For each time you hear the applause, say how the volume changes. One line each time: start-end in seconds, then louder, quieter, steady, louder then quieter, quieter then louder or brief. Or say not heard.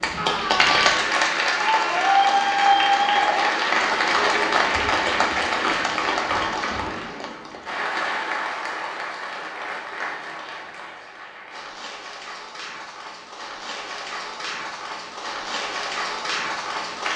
0.0-17.1 quieter then louder.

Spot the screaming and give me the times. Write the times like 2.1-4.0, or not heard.
0.1-2.2.